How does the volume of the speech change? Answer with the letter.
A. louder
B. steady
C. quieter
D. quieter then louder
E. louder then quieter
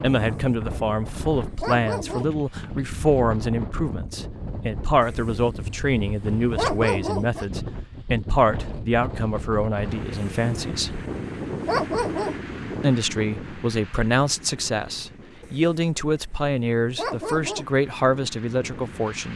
B.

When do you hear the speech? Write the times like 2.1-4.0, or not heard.
0.0-11.0, 12.8-19.3.